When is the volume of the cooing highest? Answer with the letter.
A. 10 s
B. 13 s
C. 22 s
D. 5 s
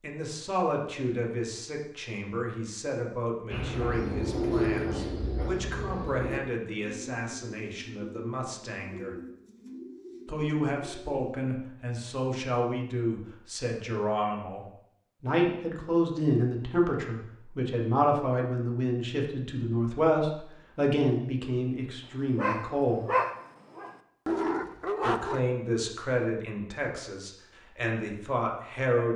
D.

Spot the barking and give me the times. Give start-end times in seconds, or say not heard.
22.4-25.4.